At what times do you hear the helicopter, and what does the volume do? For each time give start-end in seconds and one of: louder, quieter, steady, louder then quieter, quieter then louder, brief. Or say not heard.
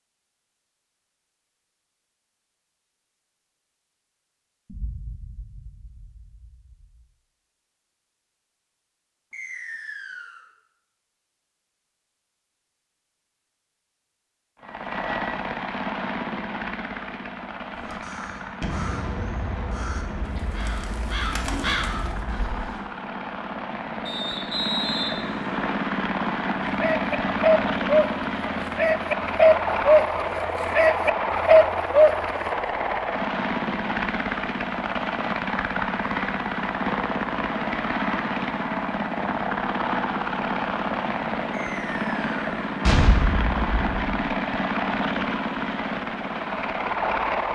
14.6-47.5 louder.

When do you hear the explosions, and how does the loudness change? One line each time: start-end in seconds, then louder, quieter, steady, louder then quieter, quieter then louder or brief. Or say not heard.
4.7-7.0 brief
18.6-22.6 quieter
42.8-44.0 brief.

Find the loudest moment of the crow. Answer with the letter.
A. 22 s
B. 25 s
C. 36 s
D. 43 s
A.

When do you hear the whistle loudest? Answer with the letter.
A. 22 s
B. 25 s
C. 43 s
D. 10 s
B.